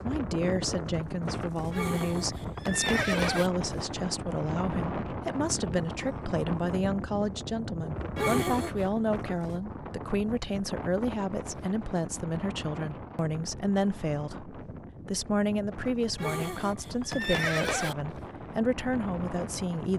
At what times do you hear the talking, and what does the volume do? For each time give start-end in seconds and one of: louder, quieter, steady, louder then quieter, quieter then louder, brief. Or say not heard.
0.0-19.9 steady.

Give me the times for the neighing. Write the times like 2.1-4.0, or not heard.
1.7-3.5, 8.2-8.8, 16.1-17.9.